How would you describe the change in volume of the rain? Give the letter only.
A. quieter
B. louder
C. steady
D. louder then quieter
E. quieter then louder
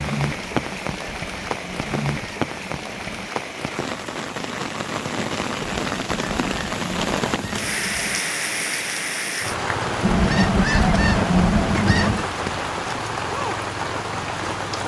C.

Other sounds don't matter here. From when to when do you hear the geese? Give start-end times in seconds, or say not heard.
0.3-3.3, 5.8-8.2, 10.0-12.2.